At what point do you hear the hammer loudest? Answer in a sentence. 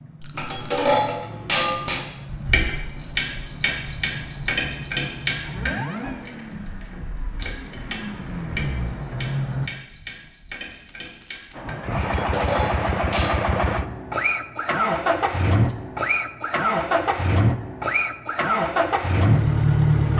The loudest moment of the hammer is at 1 second.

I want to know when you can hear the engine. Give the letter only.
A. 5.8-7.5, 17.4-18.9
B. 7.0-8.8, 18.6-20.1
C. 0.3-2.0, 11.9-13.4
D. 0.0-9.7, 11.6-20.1
D.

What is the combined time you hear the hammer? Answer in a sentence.
You can hear the hammer for 3 seconds altogether.